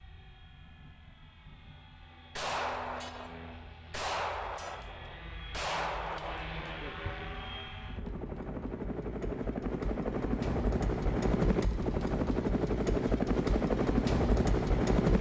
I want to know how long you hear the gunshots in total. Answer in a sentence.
The gunshots can be heard for 5 seconds in total.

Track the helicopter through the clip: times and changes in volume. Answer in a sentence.
The helicopter can be heard from 0.0 to 15.1 s, getting louder.